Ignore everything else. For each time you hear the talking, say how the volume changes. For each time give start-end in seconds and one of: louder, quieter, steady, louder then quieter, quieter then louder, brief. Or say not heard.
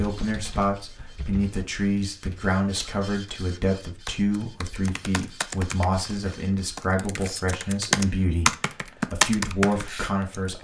0.0-10.5 steady.